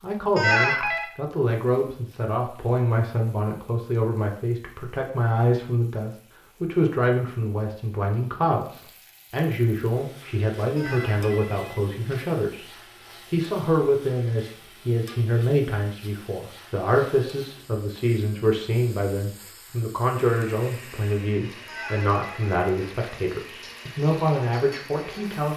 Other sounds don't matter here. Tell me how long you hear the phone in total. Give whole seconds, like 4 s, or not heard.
4 s.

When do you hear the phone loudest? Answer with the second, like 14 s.
1 s.